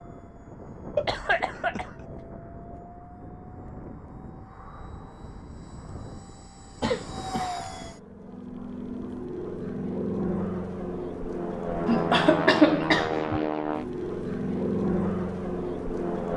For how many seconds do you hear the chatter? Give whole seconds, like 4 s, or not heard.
not heard.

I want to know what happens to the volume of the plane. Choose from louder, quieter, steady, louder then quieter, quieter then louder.
louder.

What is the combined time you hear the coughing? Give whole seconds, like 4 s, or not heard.
3 s.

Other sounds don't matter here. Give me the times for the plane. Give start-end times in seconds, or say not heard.
0.0-16.3.